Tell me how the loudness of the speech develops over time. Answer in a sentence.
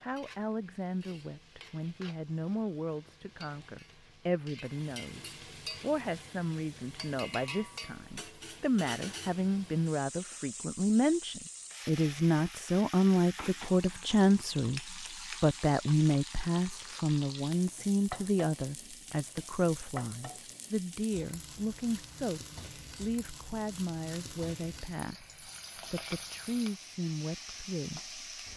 The volume of the speech goes up, then down.